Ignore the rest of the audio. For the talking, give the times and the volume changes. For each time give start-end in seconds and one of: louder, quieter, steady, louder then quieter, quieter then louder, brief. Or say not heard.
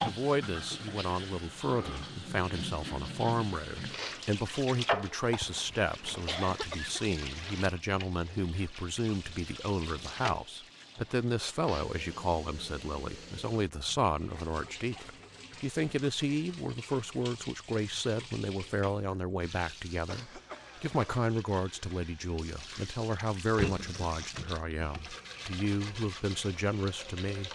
0.0-27.5 steady.